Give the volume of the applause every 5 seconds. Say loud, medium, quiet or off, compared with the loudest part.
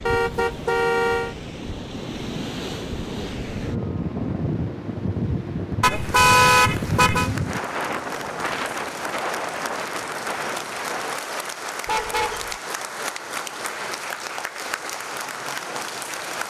off, medium, loud, loud.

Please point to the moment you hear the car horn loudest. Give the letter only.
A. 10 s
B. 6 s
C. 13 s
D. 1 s
B.